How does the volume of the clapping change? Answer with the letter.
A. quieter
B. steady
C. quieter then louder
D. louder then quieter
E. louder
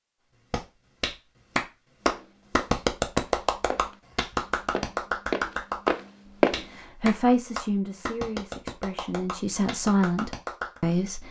A.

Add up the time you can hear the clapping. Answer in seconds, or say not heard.
10 s.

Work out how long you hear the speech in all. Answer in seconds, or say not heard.
5 s.